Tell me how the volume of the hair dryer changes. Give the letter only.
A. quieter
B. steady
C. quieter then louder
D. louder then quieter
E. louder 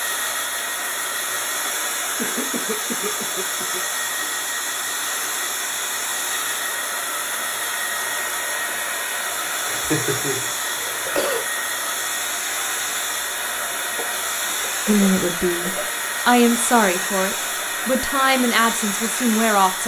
B.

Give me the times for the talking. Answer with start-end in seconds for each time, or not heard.
14.8-19.8.